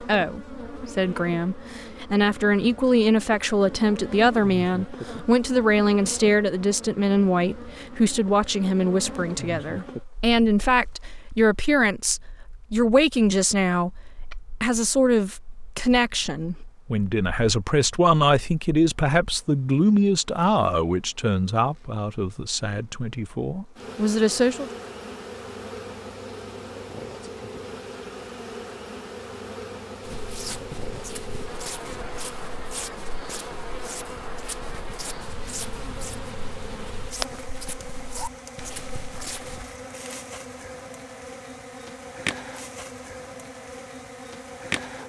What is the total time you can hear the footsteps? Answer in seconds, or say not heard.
10 s.